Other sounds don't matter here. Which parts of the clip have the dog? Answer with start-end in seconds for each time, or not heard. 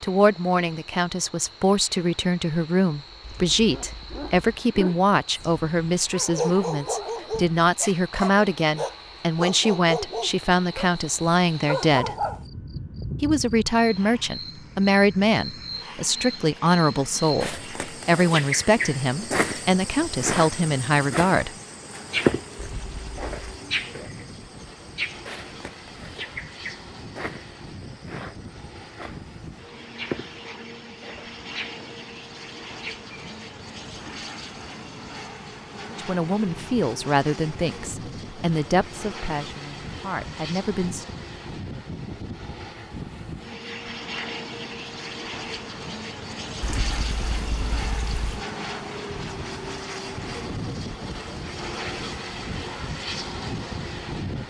3.5-12.4.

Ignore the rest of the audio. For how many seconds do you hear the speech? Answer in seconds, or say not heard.
26 s.